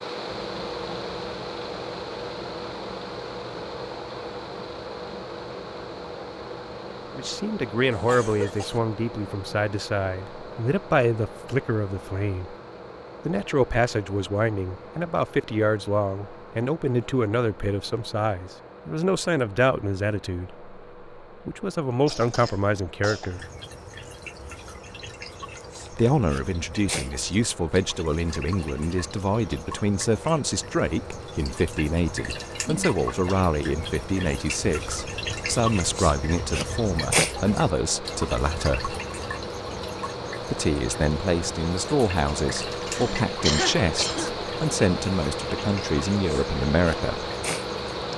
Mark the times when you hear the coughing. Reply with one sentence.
You can hear the coughing from 7.9 to 8.8 s, from 22.1 to 23.5 s and from 42.2 to 44.4 s.